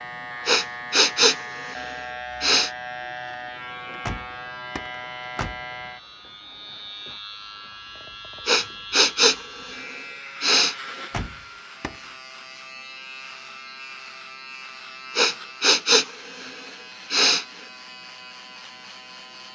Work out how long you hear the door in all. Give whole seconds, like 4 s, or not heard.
3 s.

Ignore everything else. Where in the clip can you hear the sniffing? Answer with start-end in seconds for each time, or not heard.
0.5-2.7, 8.4-10.8, 15.2-17.4.